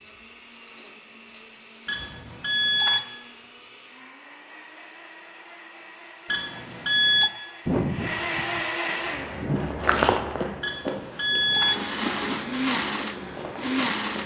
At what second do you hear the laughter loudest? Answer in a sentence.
The volume of the laughter peaks at 8 seconds.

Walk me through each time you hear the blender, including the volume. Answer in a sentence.
The blender can be heard from 0.0 to 9.6 s, getting louder; and briefly from 11.4 to 14.2 s.